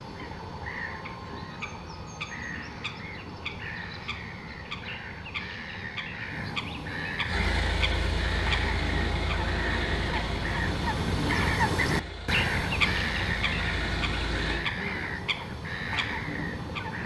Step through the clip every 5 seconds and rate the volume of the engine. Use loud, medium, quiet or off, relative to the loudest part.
off, loud, loud, off.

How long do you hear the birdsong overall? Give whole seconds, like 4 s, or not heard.
17 s.